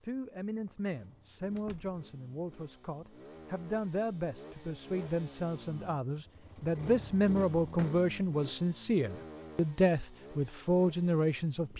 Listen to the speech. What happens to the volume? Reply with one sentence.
The loudness of the speech goes up.